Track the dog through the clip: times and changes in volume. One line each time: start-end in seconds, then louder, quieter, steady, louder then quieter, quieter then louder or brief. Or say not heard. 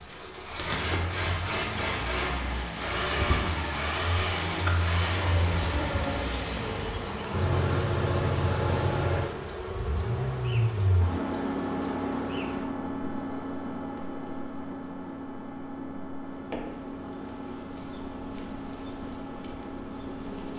not heard.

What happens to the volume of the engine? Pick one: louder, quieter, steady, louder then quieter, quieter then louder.
quieter.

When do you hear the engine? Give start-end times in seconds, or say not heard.
0.0-20.5.